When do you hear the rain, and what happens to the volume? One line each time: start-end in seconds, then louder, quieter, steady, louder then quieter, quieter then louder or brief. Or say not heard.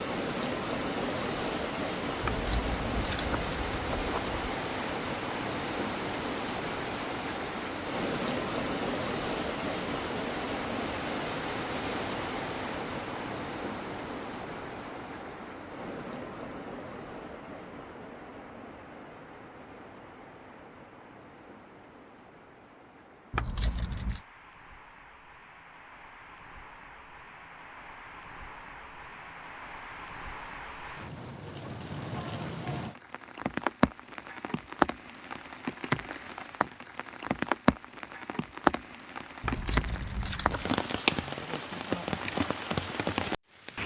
0.0-43.8 quieter then louder.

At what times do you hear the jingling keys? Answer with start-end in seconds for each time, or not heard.
2.2-4.4, 23.3-24.2, 39.4-40.7.